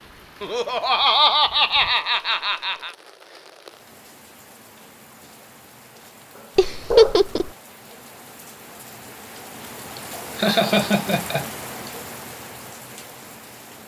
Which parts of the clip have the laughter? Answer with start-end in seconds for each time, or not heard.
0.4-2.9, 6.5-7.5, 9.9-11.9.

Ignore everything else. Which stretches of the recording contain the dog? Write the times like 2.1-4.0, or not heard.
6.3-7.2.